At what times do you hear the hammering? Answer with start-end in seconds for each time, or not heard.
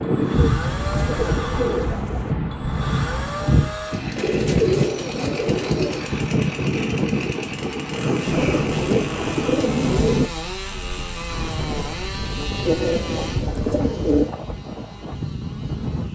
not heard.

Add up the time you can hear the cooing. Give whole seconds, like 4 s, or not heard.
8 s.